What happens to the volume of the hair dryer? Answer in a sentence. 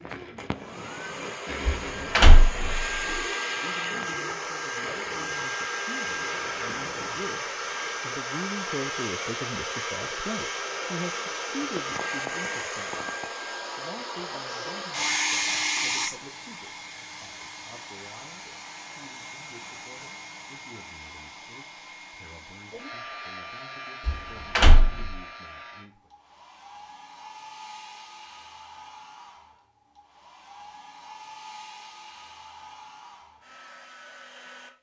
The volume of the hair dryer goes down.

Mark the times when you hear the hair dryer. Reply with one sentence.
The hair dryer can be heard from 0.0 to 34.7 s.